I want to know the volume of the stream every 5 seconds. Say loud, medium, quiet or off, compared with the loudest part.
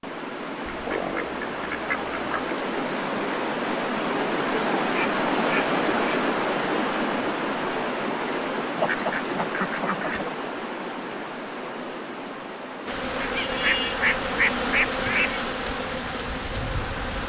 loud, loud, medium, quiet.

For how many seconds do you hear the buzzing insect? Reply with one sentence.
You can hear the buzzing insect for 4 seconds altogether.